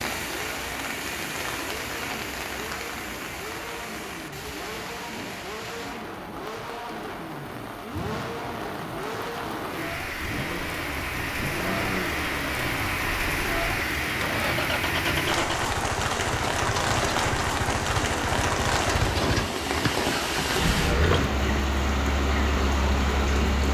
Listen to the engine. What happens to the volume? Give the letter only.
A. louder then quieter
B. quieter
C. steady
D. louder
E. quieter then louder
D.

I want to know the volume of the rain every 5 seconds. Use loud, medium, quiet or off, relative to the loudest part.
medium, medium, loud, loud, loud.